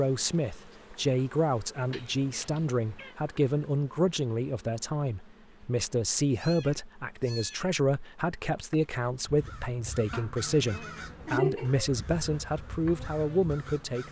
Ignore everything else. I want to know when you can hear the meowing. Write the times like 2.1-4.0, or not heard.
1.9-3.1, 6.3-7.8, 10.1-11.9.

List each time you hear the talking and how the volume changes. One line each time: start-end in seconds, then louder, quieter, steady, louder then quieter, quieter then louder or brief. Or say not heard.
0.0-14.0 steady.